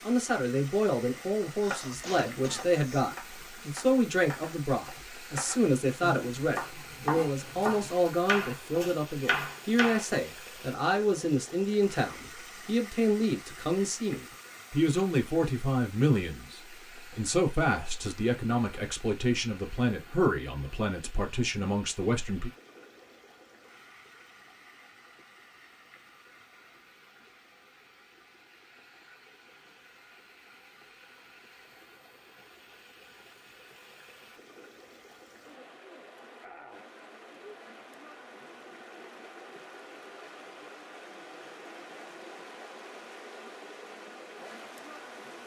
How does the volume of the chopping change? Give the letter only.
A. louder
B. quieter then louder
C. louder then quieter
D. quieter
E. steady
A.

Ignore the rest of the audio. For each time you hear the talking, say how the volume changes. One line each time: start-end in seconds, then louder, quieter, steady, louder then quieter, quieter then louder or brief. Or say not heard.
0.0-22.5 steady.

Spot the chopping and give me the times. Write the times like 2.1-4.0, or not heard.
1.6-10.1.